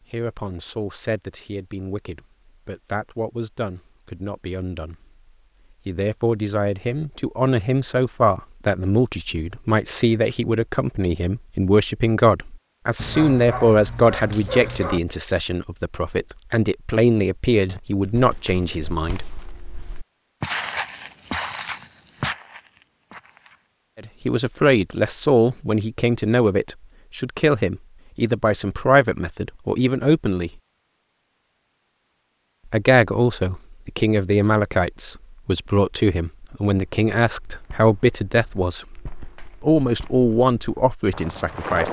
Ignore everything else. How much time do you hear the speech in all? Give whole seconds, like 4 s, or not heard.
33 s.